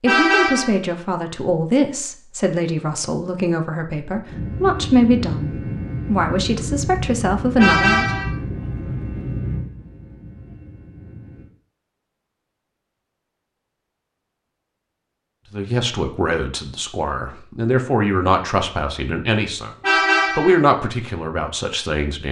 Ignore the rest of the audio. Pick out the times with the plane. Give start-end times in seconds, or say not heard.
4.2-11.5.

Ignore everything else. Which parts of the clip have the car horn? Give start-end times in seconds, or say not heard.
0.1-0.8, 7.5-8.3, 19.8-20.6.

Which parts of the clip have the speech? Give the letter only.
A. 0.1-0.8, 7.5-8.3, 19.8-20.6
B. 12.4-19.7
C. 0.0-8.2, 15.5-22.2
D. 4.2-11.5
C.